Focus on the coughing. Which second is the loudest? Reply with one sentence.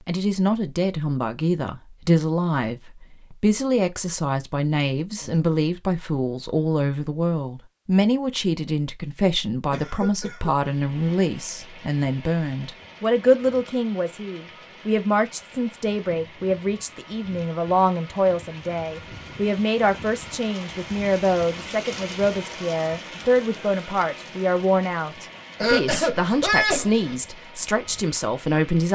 The loudest moment of the coughing is at 27 seconds.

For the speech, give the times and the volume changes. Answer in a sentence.
You can hear the speech from 0.1 to 28.8 s, at a steady volume.